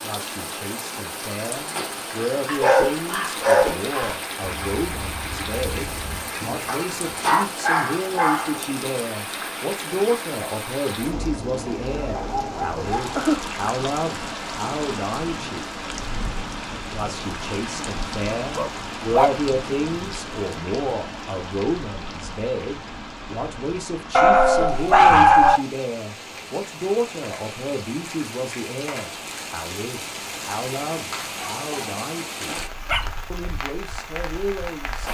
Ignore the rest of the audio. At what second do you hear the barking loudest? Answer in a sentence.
The loudest moment of the barking is at 25 seconds.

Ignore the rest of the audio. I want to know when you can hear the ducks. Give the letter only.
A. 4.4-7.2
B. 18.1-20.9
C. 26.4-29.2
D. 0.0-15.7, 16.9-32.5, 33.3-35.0
A.